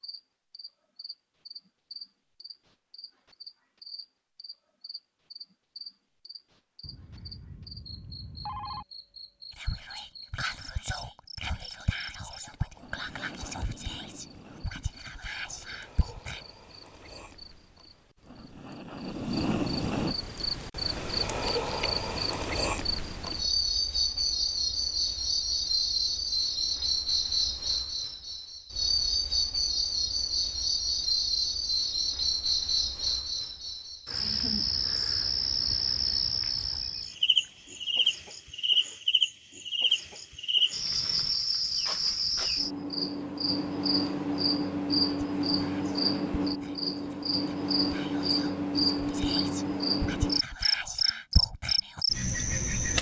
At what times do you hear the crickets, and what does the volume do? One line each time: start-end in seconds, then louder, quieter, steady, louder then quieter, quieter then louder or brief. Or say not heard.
0.0-52.9 louder.